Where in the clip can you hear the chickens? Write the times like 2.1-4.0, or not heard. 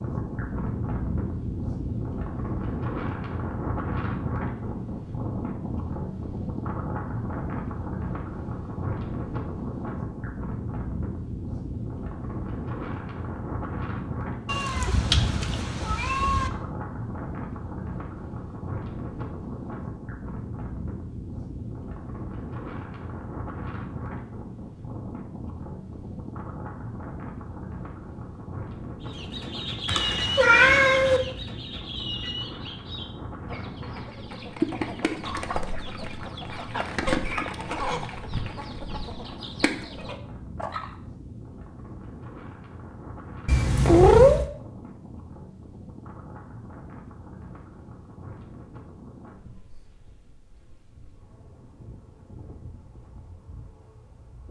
29.0-41.0.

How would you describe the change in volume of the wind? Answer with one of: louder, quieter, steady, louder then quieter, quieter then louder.
quieter.